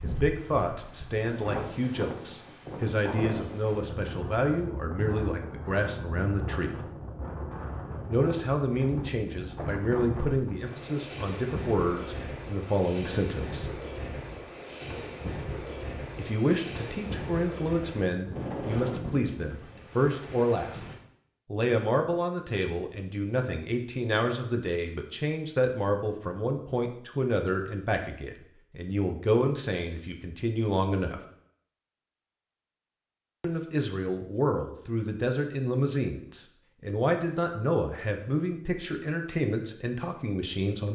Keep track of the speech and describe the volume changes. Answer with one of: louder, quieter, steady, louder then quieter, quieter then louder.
steady.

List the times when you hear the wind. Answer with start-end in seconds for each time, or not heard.
0.0-20.9.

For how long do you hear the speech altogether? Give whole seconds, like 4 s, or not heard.
34 s.